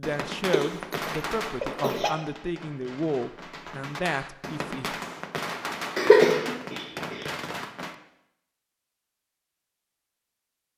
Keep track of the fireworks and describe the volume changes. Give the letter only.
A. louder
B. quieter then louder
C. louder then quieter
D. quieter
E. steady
B.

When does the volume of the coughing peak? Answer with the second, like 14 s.
6 s.